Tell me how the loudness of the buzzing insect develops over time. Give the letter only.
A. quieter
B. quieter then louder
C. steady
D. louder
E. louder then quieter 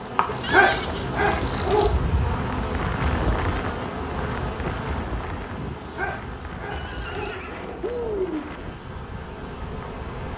A.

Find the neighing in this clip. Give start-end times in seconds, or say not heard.
0.4-2.5, 6.7-8.5.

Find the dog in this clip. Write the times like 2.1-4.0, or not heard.
0.2-1.9, 5.7-7.3.